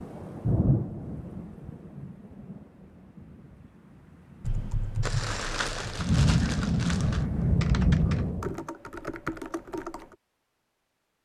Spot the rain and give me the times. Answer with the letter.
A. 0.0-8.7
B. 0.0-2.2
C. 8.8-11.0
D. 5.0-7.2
A.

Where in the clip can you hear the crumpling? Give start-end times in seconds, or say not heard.
5.0-7.2.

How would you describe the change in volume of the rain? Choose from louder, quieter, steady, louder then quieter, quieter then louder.
quieter then louder.